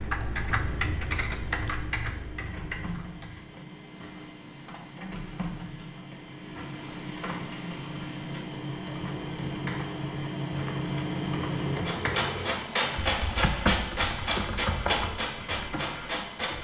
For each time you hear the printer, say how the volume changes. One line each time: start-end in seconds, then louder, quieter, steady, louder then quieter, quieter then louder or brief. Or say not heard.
0.0-16.5 louder.